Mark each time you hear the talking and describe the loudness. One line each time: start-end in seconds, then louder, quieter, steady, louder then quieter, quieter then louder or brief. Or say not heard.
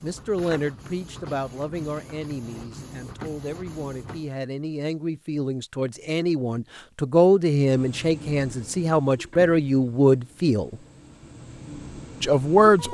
0.0-10.8 quieter then louder
12.2-12.8 brief.